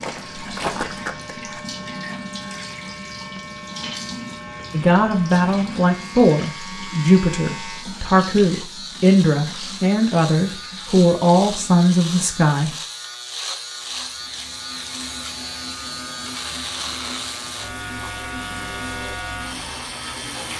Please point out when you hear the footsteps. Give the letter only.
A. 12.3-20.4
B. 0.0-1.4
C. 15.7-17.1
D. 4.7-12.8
B.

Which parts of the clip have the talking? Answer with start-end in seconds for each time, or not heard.
4.7-12.8.